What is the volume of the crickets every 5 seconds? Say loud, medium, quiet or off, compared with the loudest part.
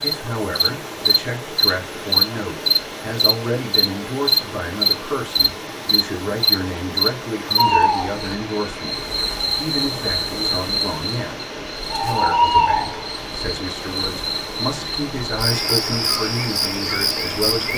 loud, loud, medium, medium.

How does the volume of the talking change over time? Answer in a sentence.
The volume of the talking stays about the same.